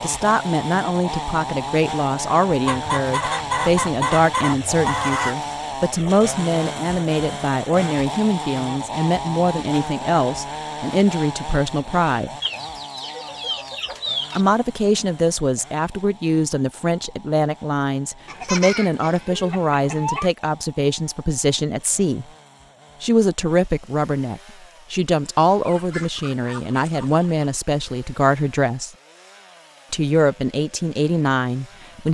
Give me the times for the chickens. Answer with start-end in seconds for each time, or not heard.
2.6-5.3, 12.4-14.4, 18.2-20.3, 25.6-27.3.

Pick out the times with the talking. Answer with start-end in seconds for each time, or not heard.
0.0-12.3, 14.3-22.2, 23.0-28.9, 29.9-32.0.